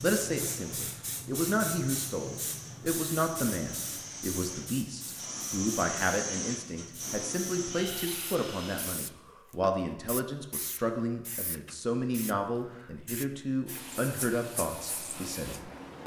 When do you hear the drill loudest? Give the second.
6 s.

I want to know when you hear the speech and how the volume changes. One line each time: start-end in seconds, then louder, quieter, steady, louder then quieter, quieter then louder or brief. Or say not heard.
0.0-16.0 steady.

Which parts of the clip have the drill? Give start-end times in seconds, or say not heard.
0.0-9.1.